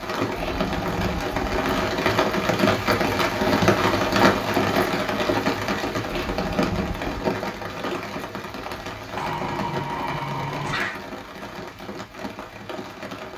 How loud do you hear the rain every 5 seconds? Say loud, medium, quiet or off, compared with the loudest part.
loud, medium, quiet.